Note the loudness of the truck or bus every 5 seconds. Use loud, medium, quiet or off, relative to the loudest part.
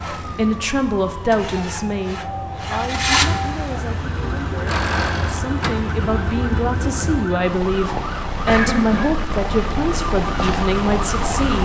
loud, loud, off.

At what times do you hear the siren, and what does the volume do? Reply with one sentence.
You can hear the siren from 0.0 to 11.6 s, getting louder.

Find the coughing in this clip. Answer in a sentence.
The coughing can be heard from 8.4 to 9.1 s.